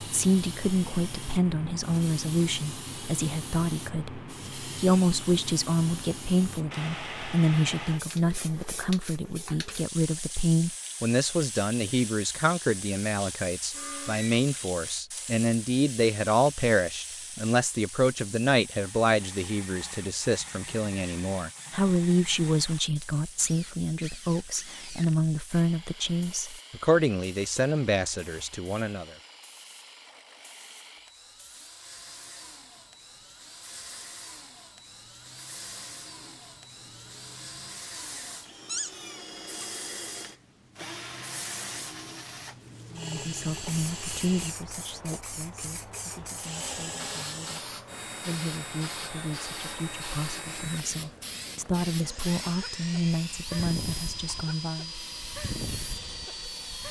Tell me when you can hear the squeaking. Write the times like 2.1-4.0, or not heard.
13.7-14.4, 38.6-39.7.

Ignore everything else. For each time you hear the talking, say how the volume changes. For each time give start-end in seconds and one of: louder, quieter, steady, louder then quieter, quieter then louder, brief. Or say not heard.
0.0-29.1 steady
43.0-54.9 quieter then louder.